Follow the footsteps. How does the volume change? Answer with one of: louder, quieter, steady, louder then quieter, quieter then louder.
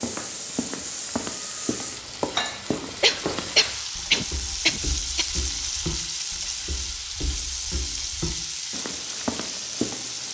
quieter then louder.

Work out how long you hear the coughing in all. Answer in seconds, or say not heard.
2 s.